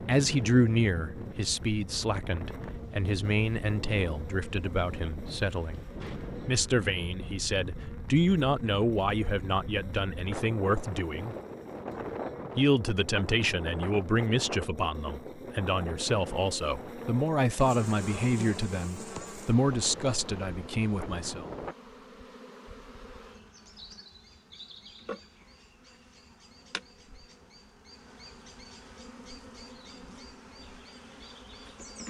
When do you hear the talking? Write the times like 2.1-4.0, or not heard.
0.0-5.8, 6.5-11.3, 12.6-21.4.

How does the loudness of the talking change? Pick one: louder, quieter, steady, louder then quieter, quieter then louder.
steady.